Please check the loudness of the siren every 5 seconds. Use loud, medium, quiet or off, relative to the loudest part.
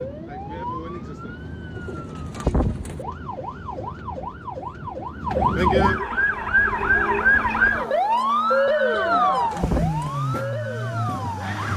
quiet, loud, medium.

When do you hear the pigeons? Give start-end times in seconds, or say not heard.
1.8-3.0, 8.9-10.2.